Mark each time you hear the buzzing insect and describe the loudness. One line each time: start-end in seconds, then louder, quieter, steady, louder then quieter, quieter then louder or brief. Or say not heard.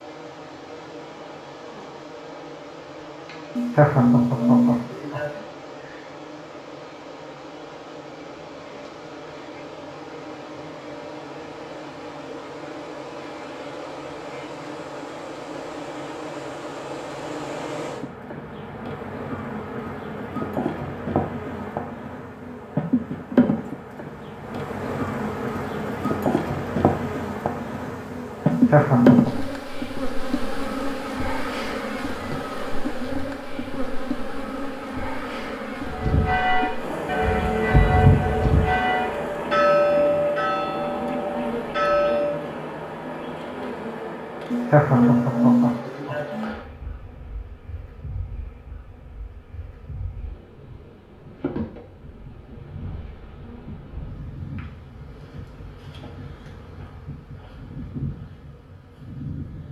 0.0-59.6 louder then quieter.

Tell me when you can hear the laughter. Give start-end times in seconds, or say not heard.
3.5-5.4, 28.5-29.4, 44.5-46.5.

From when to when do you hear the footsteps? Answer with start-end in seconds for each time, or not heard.
not heard.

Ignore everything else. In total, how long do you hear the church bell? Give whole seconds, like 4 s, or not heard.
7 s.